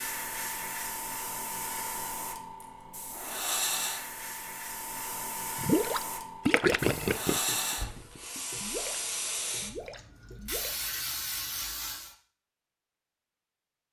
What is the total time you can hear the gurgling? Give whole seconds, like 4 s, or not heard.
5 s.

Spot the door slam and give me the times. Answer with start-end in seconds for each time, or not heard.
7.8-8.2.